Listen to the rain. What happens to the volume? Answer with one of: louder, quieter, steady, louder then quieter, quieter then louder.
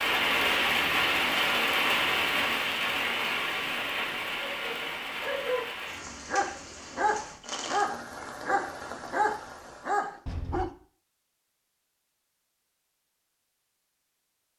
quieter.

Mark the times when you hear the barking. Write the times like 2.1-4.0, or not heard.
4.4-10.7.